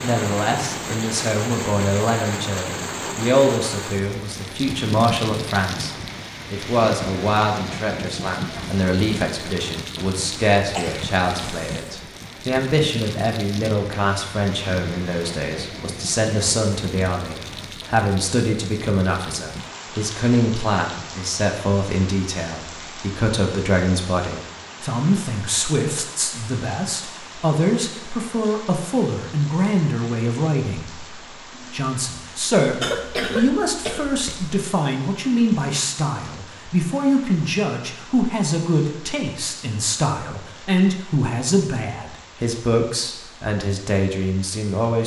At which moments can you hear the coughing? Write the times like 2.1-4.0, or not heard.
10.6-11.9, 32.8-34.6.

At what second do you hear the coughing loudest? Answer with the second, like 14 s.
33 s.